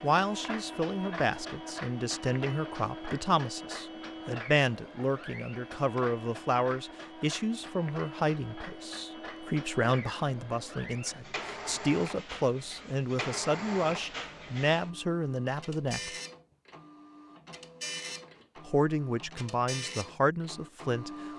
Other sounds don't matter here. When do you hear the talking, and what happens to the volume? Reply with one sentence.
The talking can be heard from 0.0 to 16.1 s, at a steady volume; and briefly from 18.6 to 21.1 s.